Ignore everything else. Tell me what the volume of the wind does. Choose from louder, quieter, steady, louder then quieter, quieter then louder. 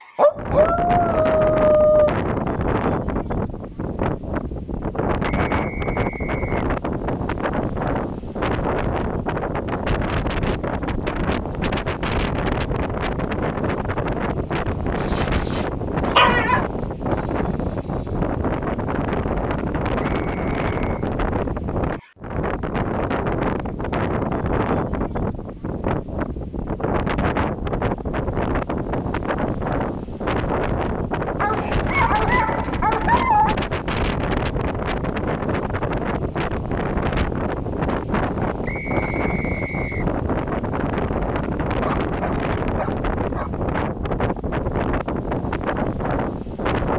steady.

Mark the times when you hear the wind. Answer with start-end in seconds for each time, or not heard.
0.0-46.9.